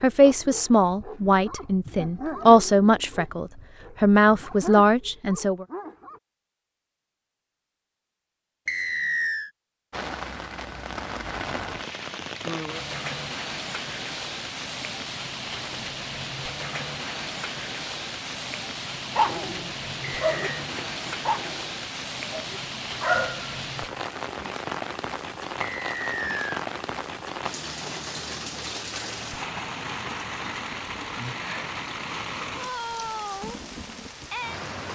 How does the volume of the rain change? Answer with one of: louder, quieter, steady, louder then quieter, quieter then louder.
steady.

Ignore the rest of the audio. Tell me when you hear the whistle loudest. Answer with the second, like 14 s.
9 s.